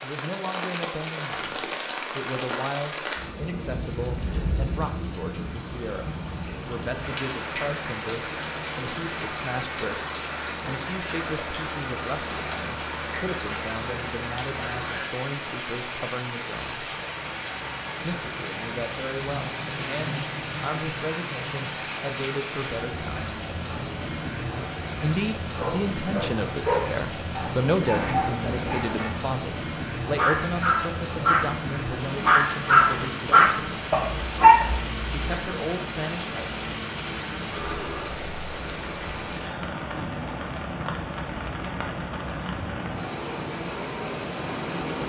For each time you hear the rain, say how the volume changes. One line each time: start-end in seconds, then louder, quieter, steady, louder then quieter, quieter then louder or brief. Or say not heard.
0.0-45.0 steady.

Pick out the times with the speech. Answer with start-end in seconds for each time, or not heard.
0.0-16.9, 18.0-23.3, 24.9-33.8, 35.1-36.6.